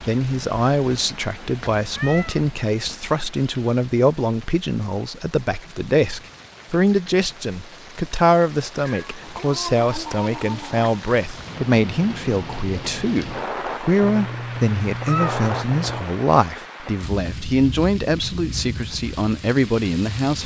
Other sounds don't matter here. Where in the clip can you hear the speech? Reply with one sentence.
The speech can be heard from 0.1 to 20.4 s.